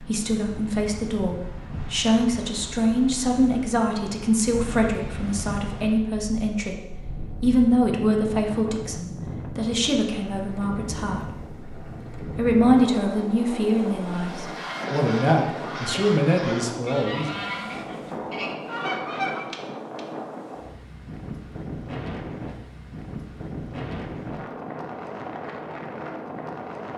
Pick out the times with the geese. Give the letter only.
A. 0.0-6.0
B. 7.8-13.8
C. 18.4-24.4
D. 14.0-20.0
D.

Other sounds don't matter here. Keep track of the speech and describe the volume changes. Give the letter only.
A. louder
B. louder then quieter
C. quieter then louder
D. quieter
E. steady
E.